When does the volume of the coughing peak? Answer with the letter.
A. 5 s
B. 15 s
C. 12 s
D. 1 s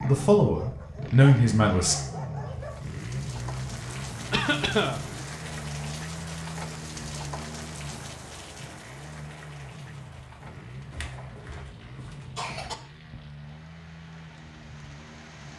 A.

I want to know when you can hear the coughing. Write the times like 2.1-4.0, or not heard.
4.3-5.0, 10.9-12.8.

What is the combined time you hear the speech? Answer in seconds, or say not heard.
2 s.